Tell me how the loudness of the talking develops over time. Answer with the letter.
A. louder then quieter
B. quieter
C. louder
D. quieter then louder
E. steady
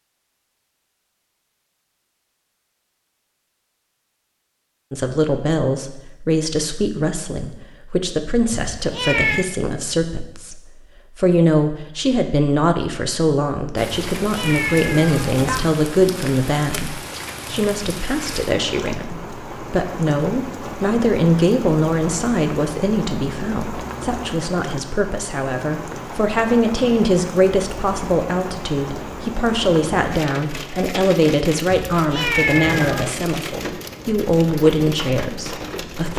E.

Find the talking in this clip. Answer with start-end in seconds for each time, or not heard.
4.9-36.1.